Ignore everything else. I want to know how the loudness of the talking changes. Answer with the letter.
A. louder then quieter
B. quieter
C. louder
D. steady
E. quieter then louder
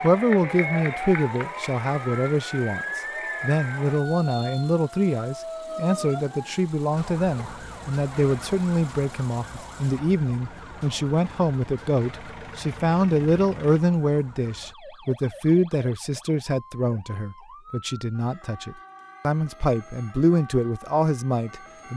D.